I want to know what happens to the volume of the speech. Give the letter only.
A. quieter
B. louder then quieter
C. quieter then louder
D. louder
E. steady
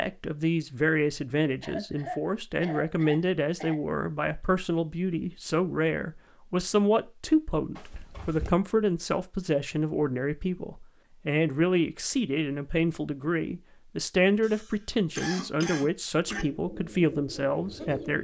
E.